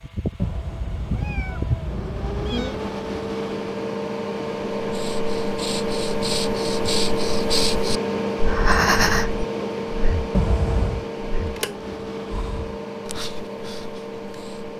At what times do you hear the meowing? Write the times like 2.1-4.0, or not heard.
0.3-2.8, 10.3-11.1.